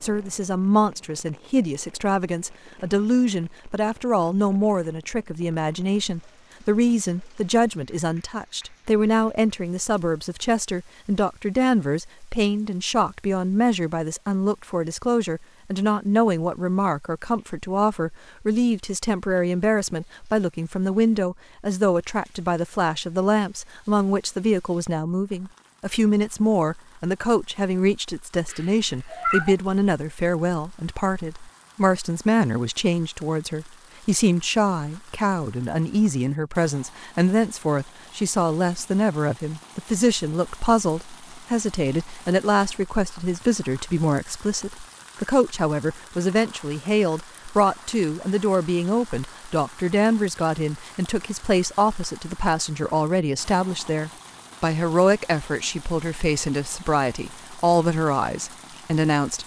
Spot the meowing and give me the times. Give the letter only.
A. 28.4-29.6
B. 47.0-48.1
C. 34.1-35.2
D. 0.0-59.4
A.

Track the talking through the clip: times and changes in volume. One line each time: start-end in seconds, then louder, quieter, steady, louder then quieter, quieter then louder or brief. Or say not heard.
0.0-59.4 steady.